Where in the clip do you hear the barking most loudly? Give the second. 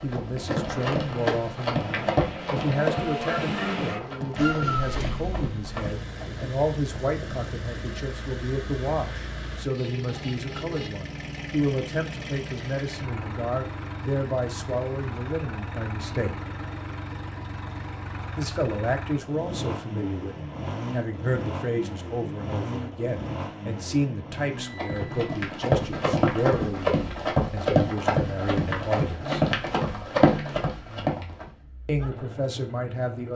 5 s.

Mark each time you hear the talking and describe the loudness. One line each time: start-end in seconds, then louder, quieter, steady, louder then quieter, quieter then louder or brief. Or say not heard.
0.0-16.4 steady
18.4-29.4 steady
31.9-33.3 brief.